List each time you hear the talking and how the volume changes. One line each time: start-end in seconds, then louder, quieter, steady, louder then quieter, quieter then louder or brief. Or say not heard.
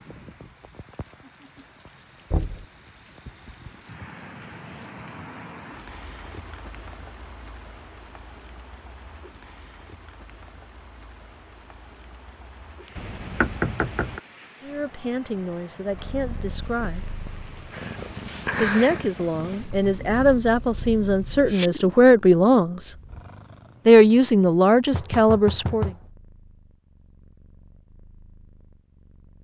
14.6-17.1 brief
18.6-22.9 louder
23.9-25.9 brief.